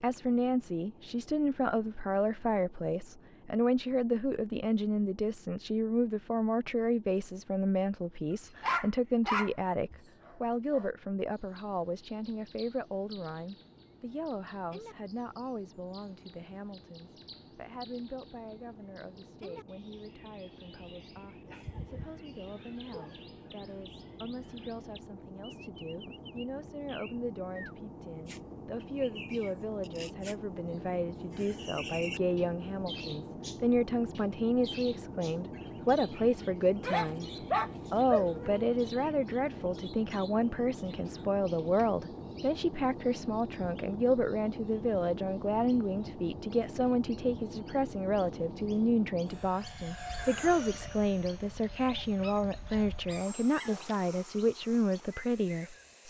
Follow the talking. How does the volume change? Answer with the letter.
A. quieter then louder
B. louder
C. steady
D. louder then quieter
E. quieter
A.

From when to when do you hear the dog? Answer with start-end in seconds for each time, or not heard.
8.6-10.9, 21.4-23.1, 36.8-38.6, 52.0-54.0.